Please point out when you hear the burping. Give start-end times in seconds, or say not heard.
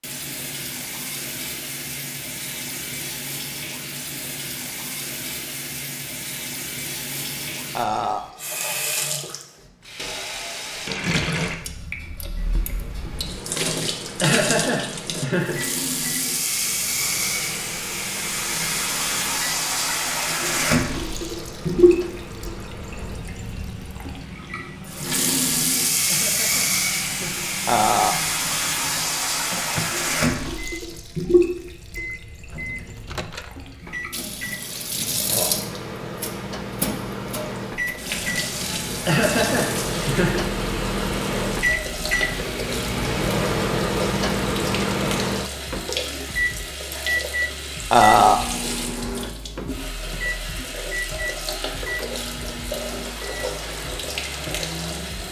7.8-8.3, 27.6-28.2, 47.9-48.5.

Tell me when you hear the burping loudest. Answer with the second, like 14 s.
48 s.